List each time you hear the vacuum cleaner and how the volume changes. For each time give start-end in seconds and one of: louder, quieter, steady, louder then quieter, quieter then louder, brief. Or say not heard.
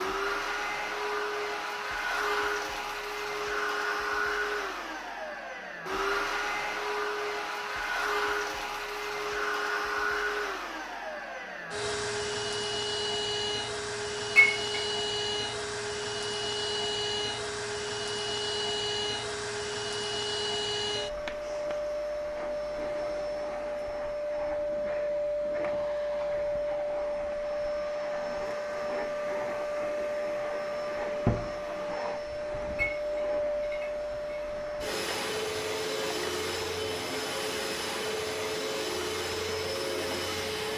0.0-40.7 steady.